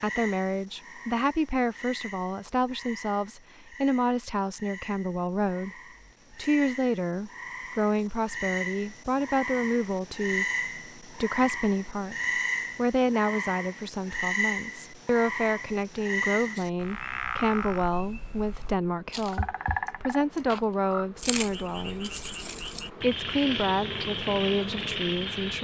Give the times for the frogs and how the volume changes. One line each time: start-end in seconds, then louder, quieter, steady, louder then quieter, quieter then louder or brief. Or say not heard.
0.0-25.5 louder.